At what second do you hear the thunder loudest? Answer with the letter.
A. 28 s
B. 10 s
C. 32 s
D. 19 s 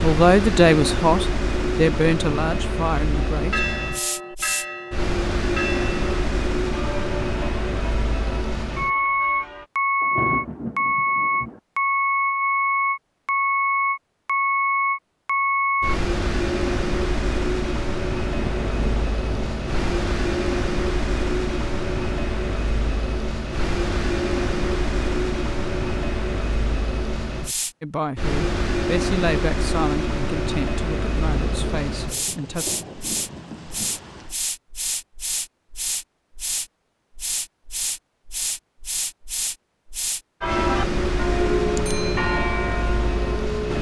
B.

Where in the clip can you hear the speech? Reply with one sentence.
The speech can be heard from 0.0 to 3.6 s and from 27.8 to 32.6 s.